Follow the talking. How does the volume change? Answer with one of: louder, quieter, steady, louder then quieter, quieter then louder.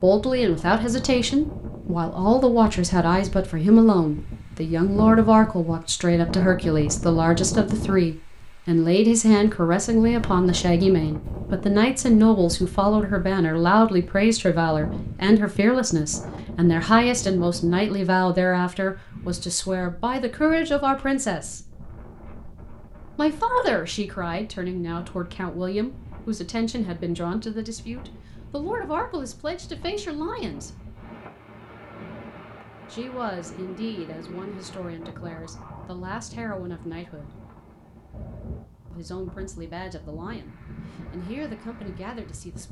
quieter.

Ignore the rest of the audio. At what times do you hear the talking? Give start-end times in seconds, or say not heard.
0.0-21.6, 23.1-30.8, 32.9-37.4, 38.9-42.6.